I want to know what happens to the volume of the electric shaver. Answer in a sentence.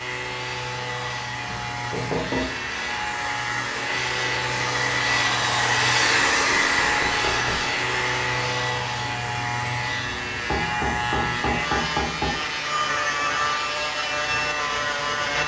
The loudness of the electric shaver goes up.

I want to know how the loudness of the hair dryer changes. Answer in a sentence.
The volume of the hair dryer goes up, then down.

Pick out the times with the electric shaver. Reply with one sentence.
You can hear the electric shaver from 0.0 to 15.4 s.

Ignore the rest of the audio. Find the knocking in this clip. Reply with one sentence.
The knocking can be heard from 1.4 to 2.5 s, from 6.5 to 7.7 s and from 10.5 to 12.3 s.